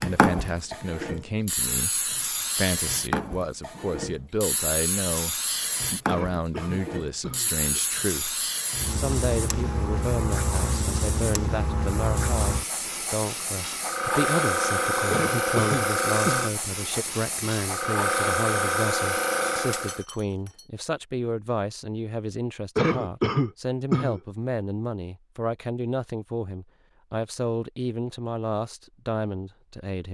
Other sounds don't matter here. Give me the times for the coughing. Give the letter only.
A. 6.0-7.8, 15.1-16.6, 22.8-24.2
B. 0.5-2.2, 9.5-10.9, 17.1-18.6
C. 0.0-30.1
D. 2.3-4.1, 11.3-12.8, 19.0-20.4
A.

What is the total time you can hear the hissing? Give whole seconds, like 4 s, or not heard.
20 s.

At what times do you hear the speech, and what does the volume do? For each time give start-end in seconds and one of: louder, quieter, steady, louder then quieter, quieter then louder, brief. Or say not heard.
0.0-30.1 steady.